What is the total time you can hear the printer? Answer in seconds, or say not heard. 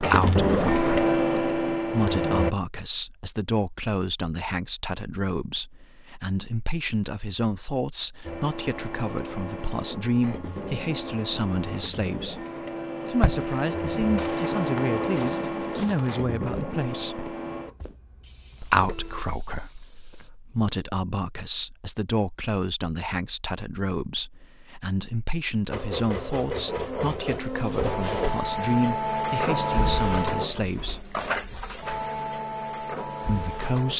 22 s.